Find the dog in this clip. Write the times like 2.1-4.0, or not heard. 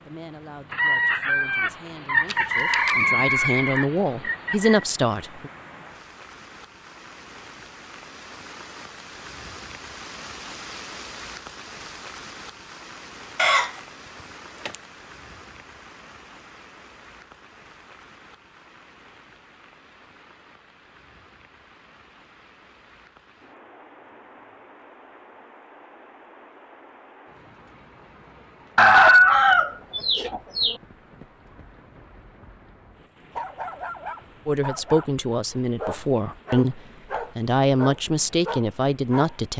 33.4-39.4.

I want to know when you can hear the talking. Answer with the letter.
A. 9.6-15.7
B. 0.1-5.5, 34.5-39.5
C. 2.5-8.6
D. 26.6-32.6
B.